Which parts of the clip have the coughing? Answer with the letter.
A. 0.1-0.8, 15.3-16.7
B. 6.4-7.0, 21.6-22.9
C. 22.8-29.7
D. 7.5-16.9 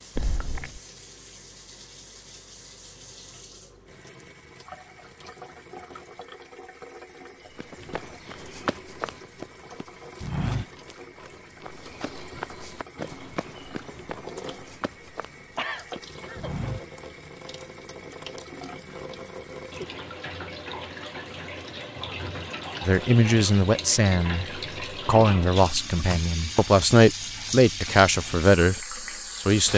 A.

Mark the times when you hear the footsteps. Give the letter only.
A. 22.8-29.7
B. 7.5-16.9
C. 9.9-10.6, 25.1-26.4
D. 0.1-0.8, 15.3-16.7
B.